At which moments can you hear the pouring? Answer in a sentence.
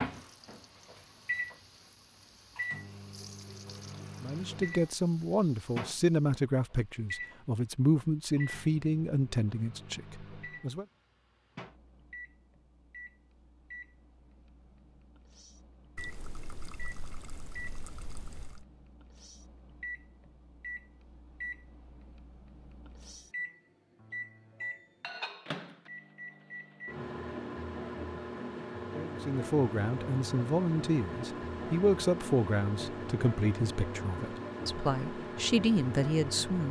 The pouring can be heard from 15.9 to 18.6 s.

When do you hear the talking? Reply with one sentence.
You can hear the talking from 4.2 to 10.8 s and from 28.9 to 36.6 s.